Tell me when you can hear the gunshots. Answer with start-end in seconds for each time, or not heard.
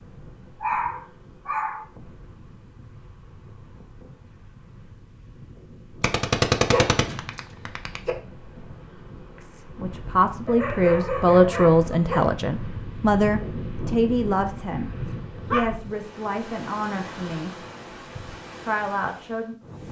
6.0-8.0.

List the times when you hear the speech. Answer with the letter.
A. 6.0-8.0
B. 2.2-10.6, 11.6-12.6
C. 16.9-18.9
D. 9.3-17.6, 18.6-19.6
D.